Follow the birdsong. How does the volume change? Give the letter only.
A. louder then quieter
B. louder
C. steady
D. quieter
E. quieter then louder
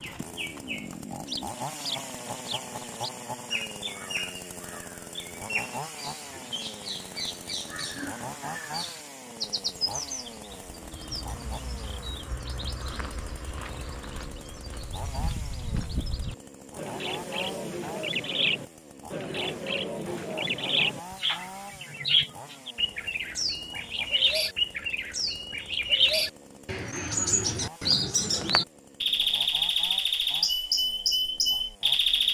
B.